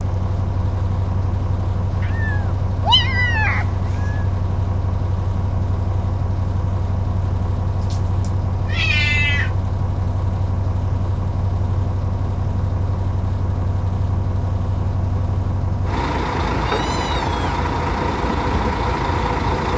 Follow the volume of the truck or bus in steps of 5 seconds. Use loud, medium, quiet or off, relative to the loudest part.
medium, medium, medium, loud.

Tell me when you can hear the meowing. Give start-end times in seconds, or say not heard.
2.0-4.2, 7.8-9.5, 16.5-17.6.